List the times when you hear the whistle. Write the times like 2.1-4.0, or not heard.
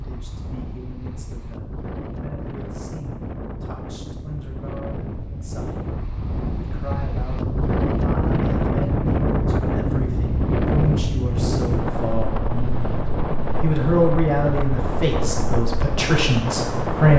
not heard.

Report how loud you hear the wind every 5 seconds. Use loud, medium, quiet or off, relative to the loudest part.
medium, loud, loud, loud.